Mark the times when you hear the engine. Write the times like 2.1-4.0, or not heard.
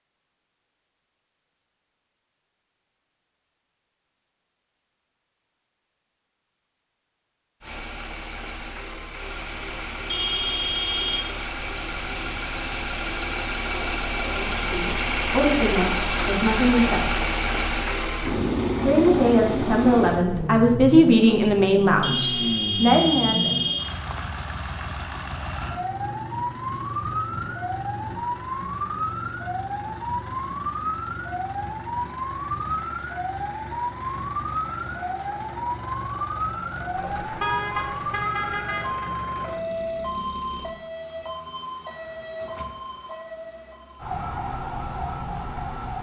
7.6-40.8.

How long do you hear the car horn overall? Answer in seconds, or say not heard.
5 s.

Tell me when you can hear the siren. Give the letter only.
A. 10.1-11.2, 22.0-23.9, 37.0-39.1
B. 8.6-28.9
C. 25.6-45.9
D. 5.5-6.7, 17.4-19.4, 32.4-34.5
C.